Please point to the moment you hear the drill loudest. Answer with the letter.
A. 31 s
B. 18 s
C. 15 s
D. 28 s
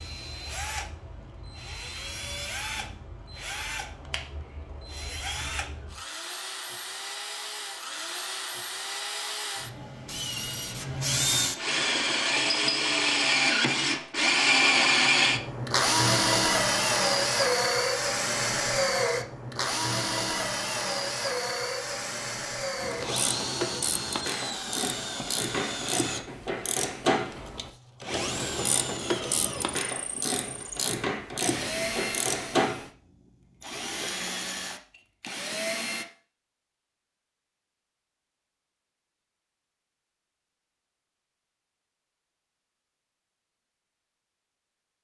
C.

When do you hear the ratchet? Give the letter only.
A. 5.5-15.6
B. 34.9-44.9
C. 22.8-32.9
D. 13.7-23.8
C.